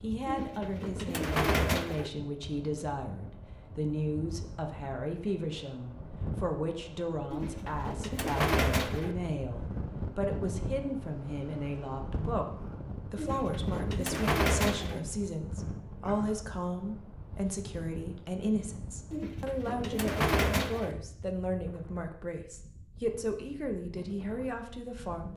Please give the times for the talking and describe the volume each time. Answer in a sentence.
The talking can be heard from 0.0 to 12.4 s, at a steady volume; and from 13.1 to 25.3 s, at a steady volume.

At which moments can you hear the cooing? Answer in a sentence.
The cooing can be heard from 0.2 to 2.1 s, from 7.3 to 9.2 s, from 13.2 to 15.0 s and from 19.1 to 20.9 s.